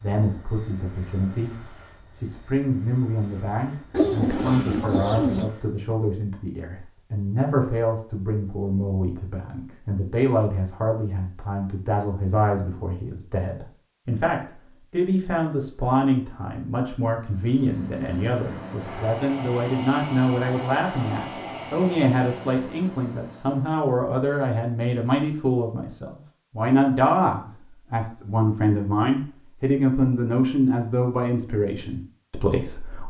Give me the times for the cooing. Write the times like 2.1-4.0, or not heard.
3.9-5.5.